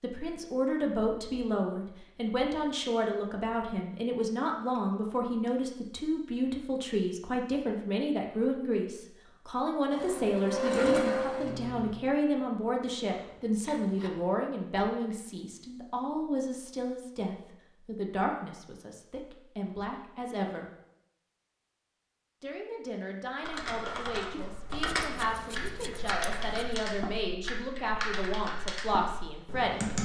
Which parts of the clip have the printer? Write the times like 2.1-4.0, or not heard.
9.9-11.9.